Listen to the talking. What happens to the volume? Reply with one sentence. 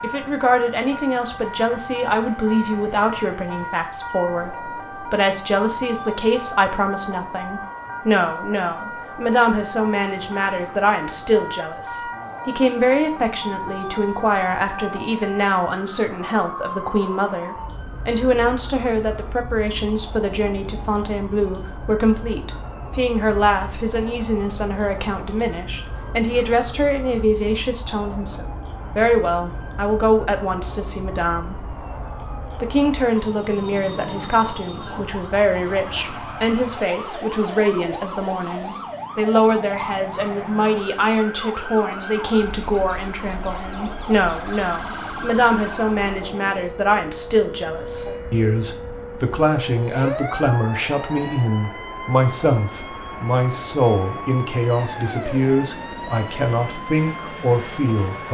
The loudness of the talking stays about the same.